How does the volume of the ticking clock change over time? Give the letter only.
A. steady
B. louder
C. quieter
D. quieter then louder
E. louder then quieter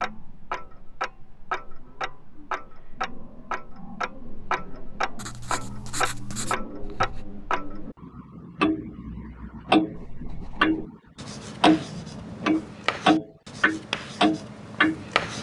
B.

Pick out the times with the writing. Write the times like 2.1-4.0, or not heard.
5.2-7.2, 9.9-15.3.